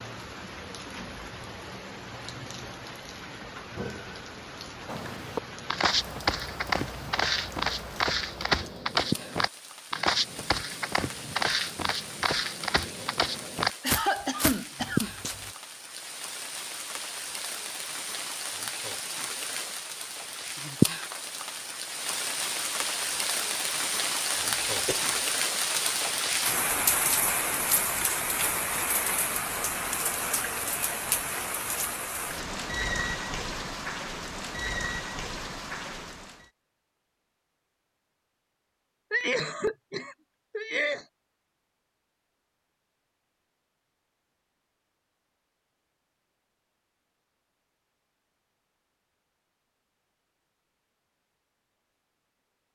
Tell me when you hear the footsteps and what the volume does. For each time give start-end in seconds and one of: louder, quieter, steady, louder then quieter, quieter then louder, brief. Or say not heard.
4.8-15.6 steady.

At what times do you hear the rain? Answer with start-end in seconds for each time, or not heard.
0.0-36.5.